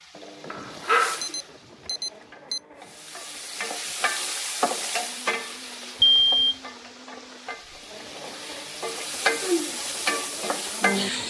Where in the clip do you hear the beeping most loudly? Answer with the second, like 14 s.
6 s.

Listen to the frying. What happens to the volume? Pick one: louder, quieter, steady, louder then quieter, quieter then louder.
quieter then louder.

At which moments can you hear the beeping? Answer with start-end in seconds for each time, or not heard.
1.2-2.6, 6.0-6.5.